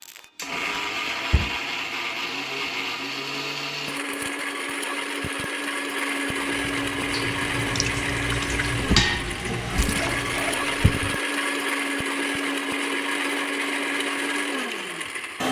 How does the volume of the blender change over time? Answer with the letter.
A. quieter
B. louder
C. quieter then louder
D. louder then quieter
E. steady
E.